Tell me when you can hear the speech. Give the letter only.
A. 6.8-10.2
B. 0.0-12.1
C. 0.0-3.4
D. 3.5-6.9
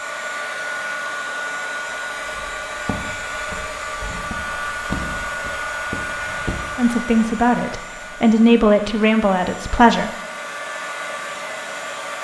A.